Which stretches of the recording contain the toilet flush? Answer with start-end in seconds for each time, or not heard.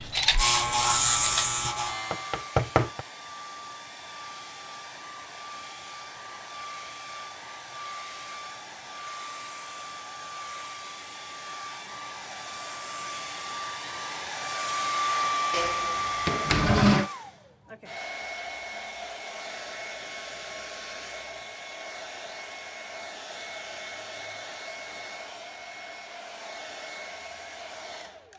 15.5-17.1.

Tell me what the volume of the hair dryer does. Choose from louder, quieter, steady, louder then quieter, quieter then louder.
louder then quieter.